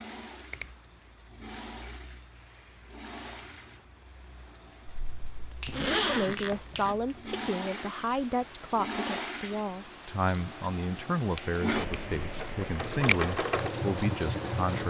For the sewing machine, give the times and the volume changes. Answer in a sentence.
The sewing machine can be heard from 0.0 to 14.8 s, getting louder.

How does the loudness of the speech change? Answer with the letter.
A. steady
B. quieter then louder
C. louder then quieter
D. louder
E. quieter
A.